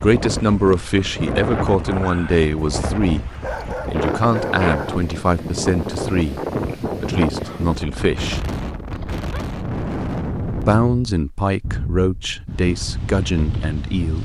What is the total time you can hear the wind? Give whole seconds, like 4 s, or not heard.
14 s.